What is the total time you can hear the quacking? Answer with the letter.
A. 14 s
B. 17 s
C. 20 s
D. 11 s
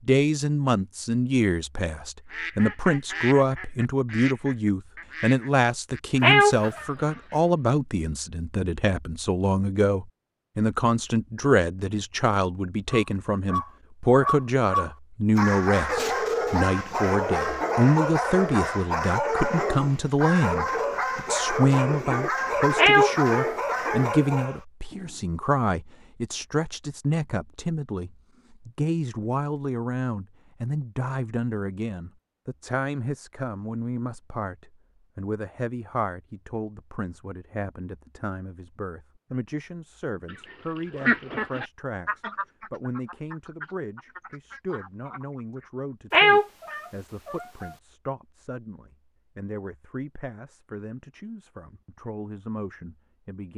D.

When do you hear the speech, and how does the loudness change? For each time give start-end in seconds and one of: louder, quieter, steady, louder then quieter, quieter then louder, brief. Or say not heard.
0.1-53.5 quieter.